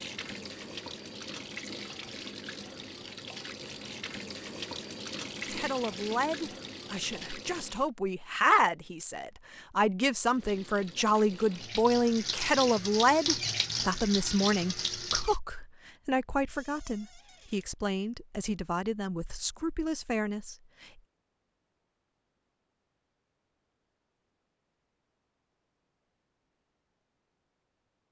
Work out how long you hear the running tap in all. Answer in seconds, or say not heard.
13 s.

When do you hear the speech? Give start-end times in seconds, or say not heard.
5.5-21.0.